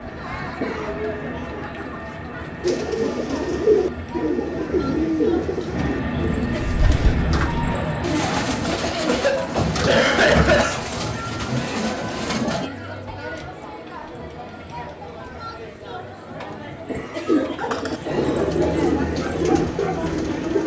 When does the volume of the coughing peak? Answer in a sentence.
The volume of the coughing peaks at 10 seconds.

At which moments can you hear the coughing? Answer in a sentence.
The coughing can be heard from 0.4 to 0.9 s, from 9.1 to 10.8 s, from 16.7 to 17.2 s and from 17.9 to 18.9 s.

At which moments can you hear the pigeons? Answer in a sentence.
You can hear the pigeons from 2.6 to 12.7 s and from 17.2 to 20.6 s.